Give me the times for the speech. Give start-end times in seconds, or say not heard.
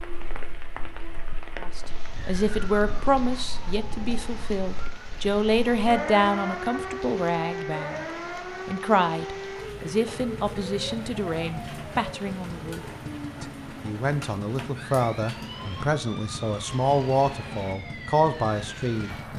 1.6-8.1, 8.7-19.1.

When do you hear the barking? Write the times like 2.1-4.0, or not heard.
not heard.